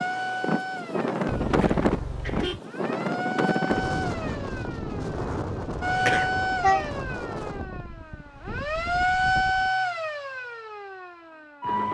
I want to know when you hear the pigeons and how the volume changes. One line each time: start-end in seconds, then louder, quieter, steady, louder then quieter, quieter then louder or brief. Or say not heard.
not heard.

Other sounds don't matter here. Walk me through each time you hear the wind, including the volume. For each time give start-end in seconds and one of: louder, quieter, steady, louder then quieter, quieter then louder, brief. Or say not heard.
0.0-9.7 quieter.